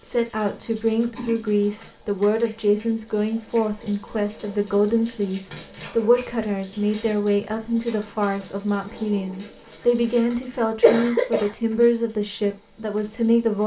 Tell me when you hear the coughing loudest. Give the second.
11 s.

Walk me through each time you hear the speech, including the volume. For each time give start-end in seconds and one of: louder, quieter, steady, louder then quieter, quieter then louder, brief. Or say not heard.
0.0-13.6 steady.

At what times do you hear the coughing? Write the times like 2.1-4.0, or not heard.
0.6-1.6, 5.5-7.2, 10.8-11.5.